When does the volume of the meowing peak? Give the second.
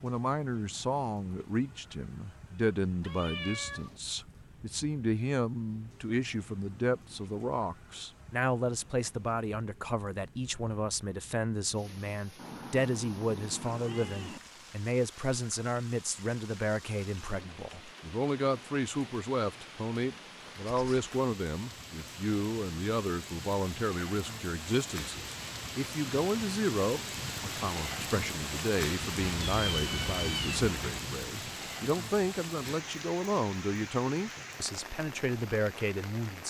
30 s.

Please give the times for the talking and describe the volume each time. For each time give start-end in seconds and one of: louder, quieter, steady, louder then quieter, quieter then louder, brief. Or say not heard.
0.0-36.4 steady.